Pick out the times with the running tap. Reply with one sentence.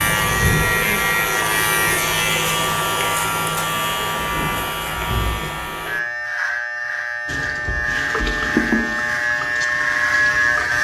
The running tap can be heard from 7.2 to 10.7 s.